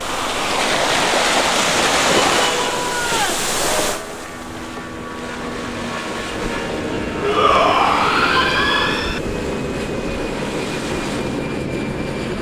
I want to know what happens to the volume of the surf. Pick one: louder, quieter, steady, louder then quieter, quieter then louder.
quieter.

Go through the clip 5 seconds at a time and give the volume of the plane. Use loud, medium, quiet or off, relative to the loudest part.
medium, loud, loud.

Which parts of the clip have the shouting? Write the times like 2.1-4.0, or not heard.
2.2-3.5, 7.2-9.2.